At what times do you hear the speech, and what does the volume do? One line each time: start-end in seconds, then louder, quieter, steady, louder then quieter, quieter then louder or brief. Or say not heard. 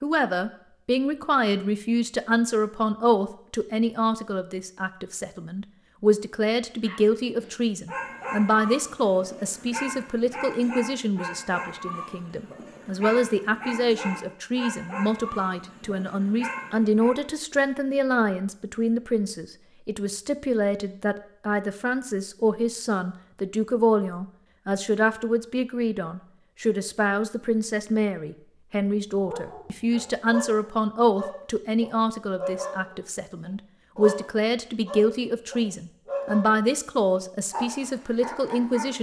0.0-38.9 steady.